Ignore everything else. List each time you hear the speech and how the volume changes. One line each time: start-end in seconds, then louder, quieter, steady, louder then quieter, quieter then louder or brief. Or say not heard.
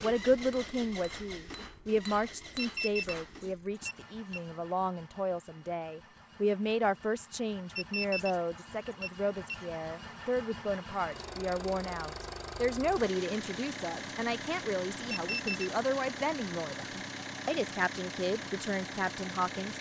0.0-19.7 steady.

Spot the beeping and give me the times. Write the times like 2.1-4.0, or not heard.
2.6-4.4, 7.8-9.8, 15.1-15.7.